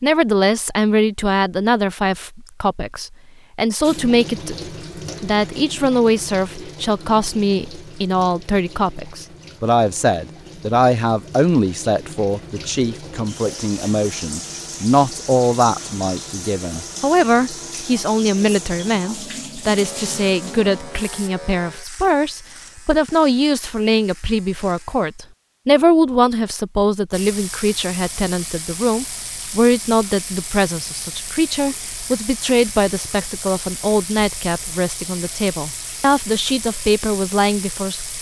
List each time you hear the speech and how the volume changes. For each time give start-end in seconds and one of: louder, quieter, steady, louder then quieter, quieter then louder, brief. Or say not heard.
0.0-38.1 steady.